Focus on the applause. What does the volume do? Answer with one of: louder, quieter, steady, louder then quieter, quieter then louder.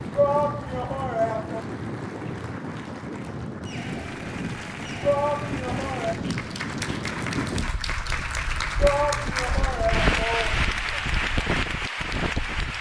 louder.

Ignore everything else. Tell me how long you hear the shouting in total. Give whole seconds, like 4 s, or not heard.
5 s.